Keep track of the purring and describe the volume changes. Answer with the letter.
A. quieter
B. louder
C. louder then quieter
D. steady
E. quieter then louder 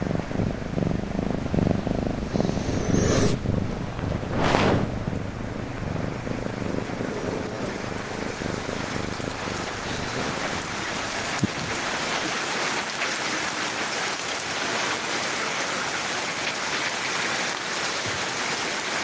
A.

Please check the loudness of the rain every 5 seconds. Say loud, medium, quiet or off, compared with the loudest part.
quiet, medium, loud, loud.